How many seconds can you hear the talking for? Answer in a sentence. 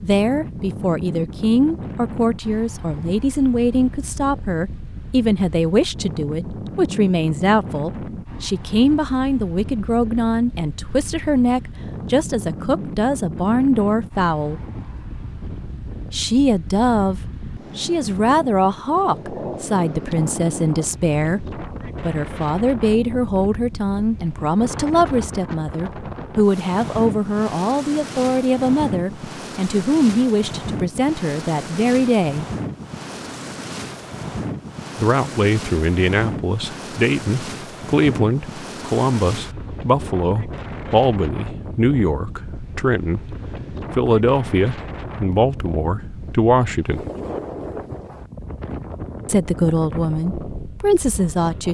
The talking can be heard for 45 seconds in total.